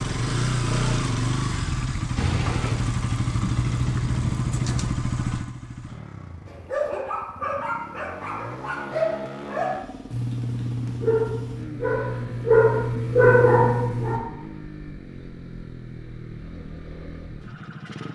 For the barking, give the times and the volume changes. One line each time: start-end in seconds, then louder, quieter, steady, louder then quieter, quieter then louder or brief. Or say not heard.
6.5-14.2 louder.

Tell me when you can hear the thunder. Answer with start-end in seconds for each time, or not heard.
2.1-5.1.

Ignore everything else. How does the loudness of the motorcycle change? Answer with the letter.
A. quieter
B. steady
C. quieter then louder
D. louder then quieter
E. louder
A.